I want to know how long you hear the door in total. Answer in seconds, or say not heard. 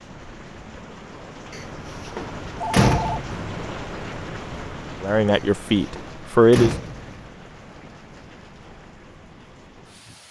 4 s.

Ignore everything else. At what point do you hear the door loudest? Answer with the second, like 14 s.
3 s.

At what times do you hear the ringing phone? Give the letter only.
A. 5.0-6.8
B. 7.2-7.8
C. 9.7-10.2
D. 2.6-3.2
D.